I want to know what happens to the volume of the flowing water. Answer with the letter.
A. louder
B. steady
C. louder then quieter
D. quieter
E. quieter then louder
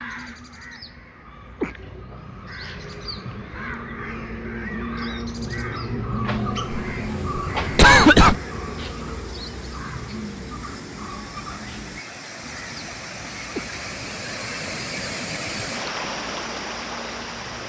A.